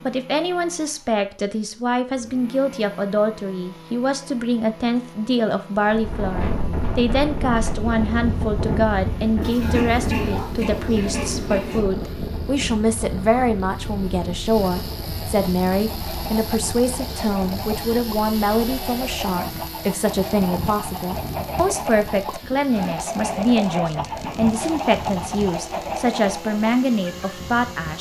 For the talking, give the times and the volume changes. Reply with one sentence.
The talking can be heard from 0.0 to 27.9 s, at a steady volume.